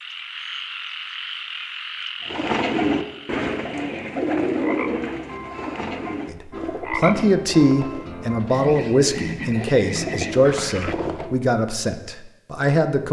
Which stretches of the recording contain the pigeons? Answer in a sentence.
You can hear the pigeons from 2.2 to 11.3 s.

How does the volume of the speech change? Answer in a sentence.
The loudness of the speech goes down.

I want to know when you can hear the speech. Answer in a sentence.
You can hear the speech from 6.3 to 13.0 s.